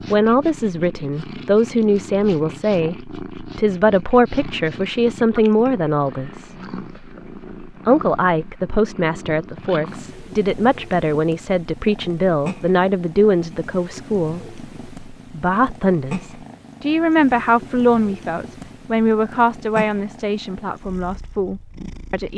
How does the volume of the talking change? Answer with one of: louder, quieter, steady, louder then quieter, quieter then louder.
steady.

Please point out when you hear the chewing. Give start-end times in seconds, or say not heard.
not heard.